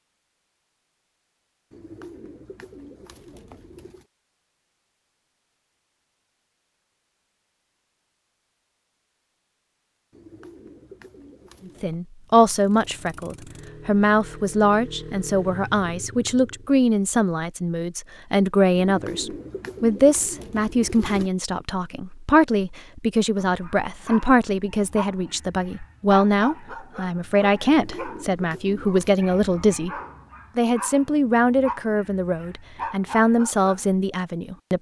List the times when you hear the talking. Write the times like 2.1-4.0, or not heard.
11.7-29.9, 30.6-34.7.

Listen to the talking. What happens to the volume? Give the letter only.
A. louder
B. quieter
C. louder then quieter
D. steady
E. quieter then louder
D.